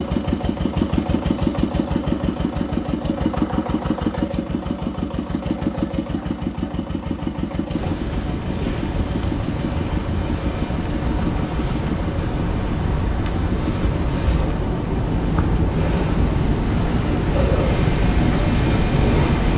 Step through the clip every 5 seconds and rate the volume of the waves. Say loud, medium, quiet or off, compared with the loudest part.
off, medium, medium, loud.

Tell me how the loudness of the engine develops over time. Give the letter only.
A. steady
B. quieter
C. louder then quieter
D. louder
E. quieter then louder
B.